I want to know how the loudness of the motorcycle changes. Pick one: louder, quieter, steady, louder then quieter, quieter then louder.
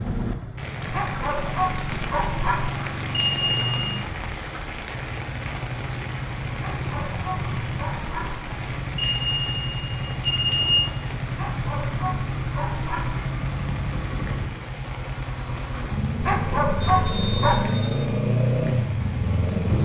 louder.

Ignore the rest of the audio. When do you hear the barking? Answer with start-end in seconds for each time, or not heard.
0.8-2.7, 6.5-8.3, 11.3-13.2, 16.2-17.8.